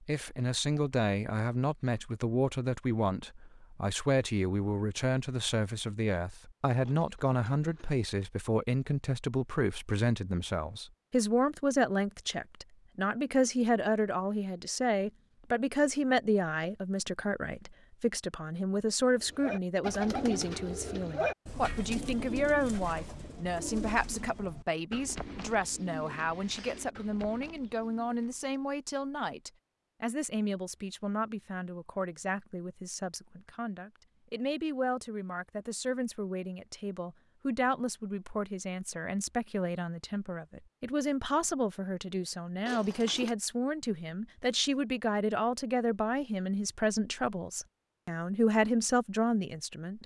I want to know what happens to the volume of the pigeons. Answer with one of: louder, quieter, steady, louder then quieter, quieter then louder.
quieter.